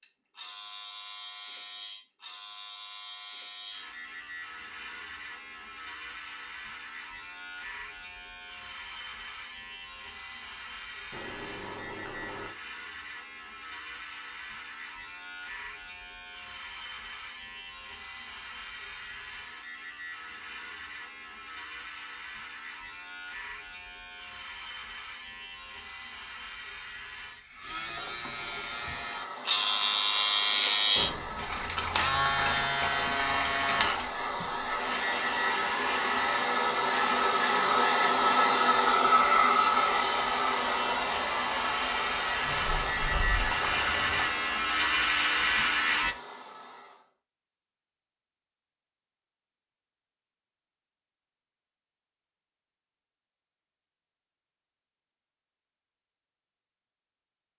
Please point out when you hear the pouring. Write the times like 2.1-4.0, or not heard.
11.1-12.6, 31.4-34.1, 42.4-44.4.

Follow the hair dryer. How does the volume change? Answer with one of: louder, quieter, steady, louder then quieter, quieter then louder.
louder then quieter.